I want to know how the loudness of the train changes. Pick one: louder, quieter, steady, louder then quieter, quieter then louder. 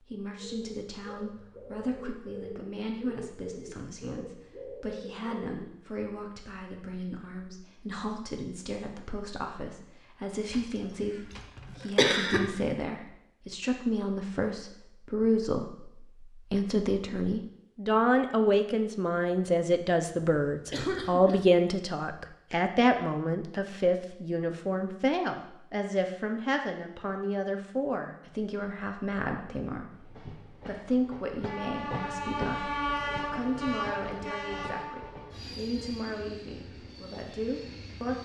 louder then quieter.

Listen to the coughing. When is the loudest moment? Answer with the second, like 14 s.
12 s.